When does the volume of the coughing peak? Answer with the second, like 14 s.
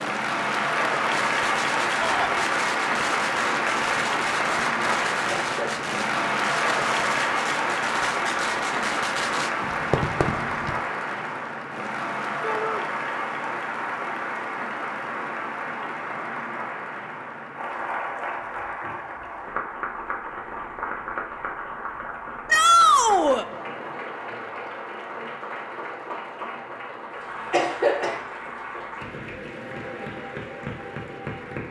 28 s.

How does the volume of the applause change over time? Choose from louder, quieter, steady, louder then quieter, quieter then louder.
quieter.